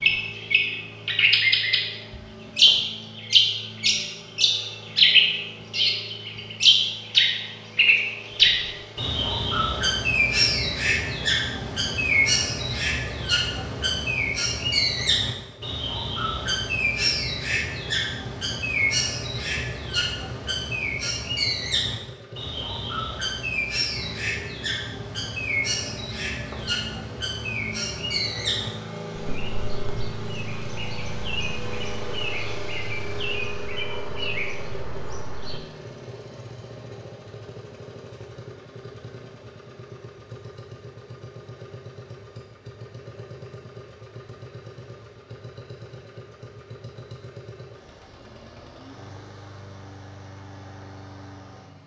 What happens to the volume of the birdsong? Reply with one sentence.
The loudness of the birdsong goes down.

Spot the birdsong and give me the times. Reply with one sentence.
You can hear the birdsong from 0.0 to 35.6 s.